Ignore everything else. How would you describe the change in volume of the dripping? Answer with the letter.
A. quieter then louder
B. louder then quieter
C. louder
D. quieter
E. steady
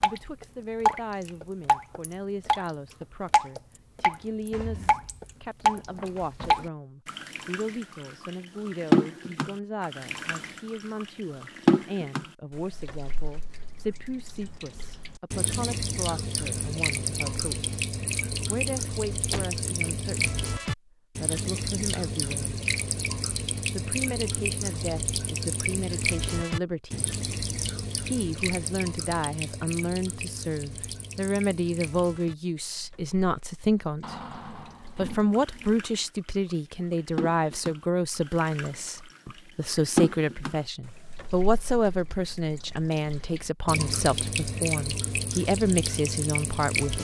A.